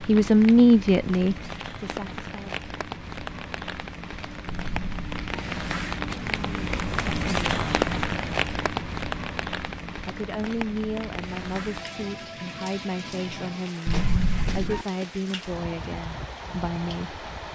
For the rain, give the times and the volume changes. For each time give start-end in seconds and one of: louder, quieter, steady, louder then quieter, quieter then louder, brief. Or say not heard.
0.0-17.5 louder then quieter.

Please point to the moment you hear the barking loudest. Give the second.
14 s.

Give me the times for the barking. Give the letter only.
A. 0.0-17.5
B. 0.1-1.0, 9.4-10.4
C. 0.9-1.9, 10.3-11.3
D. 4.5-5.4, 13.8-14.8
D.